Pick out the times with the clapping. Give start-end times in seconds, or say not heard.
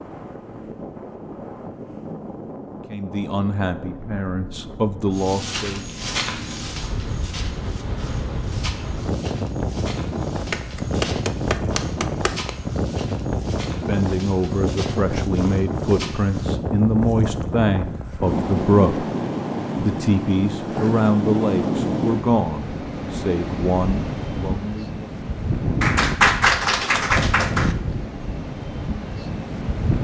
10.5-12.5, 25.8-27.8.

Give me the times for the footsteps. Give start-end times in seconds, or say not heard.
5.1-16.6.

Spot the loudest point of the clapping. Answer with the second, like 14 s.
26 s.